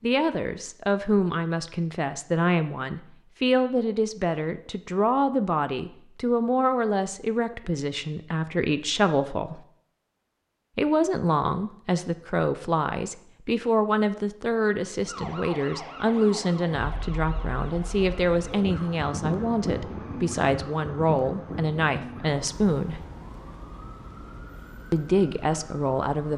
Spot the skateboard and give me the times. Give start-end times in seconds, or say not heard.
not heard.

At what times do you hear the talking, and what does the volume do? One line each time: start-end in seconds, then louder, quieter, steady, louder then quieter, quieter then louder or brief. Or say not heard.
0.0-9.6 steady
10.8-23.0 steady
24.9-26.3 brief.